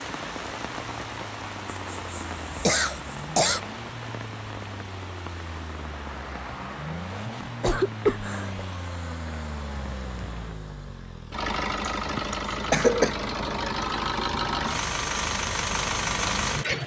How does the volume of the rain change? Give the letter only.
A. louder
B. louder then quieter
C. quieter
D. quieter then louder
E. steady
C.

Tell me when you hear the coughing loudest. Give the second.
13 s.